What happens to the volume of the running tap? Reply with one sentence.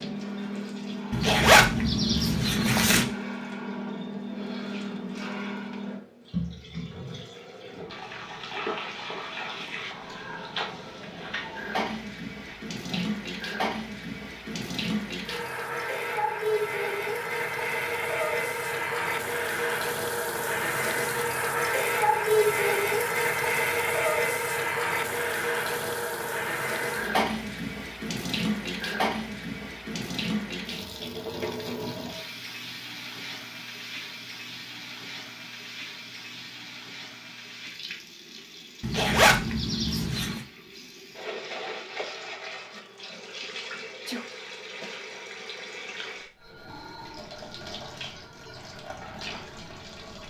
The loudness of the running tap goes up, then down.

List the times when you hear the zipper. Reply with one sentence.
You can hear the zipper from 1.1 to 3.0 s and from 38.8 to 40.4 s.